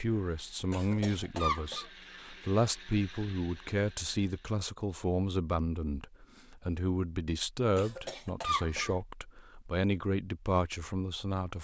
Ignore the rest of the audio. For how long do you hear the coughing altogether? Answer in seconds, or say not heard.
2 s.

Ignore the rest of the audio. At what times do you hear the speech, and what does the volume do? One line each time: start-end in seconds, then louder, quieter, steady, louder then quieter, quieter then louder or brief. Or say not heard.
0.0-11.6 steady.